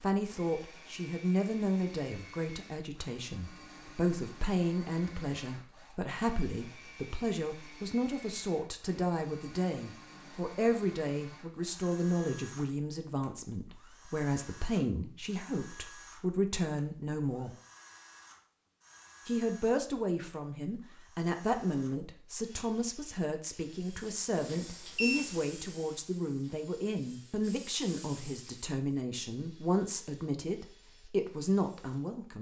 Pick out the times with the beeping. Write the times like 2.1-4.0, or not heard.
24.5-25.3.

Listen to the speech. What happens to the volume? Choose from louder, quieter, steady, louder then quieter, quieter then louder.
steady.